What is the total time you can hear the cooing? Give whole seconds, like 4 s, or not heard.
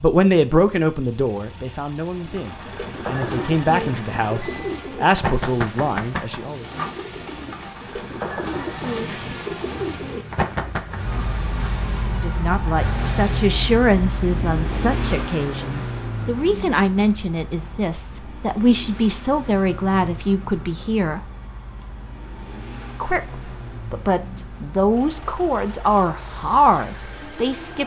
9 s.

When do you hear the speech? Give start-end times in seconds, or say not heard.
0.0-6.7, 12.1-21.2, 23.0-27.8.